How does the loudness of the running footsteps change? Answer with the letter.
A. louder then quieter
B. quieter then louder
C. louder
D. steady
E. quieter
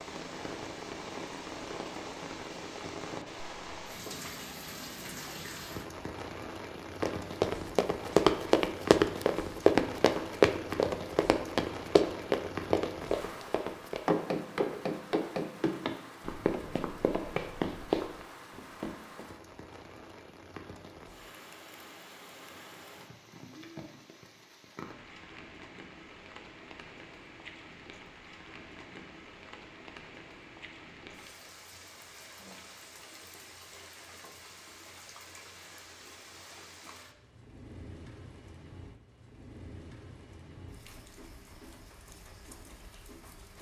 E.